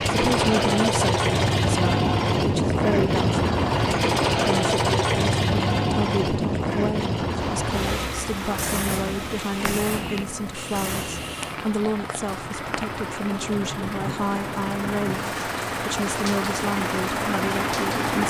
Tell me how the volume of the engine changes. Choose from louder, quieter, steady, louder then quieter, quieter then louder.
quieter then louder.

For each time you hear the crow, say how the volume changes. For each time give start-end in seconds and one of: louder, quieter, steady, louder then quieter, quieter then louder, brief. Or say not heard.
not heard.